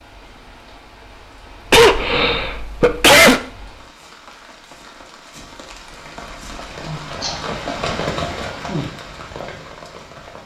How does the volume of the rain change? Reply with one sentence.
The volume of the rain goes up.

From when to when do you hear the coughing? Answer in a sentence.
You can hear the coughing from 1.7 to 3.4 s and from 7.2 to 8.4 s.